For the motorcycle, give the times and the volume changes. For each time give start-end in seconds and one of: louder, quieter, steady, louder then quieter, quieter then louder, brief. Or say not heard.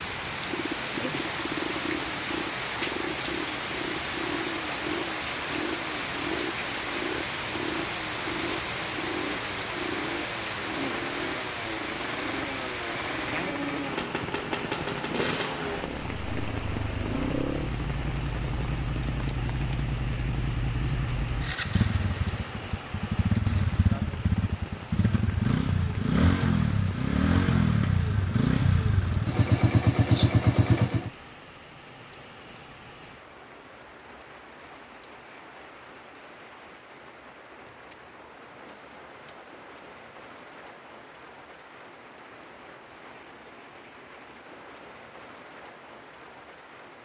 0.0-31.1 louder.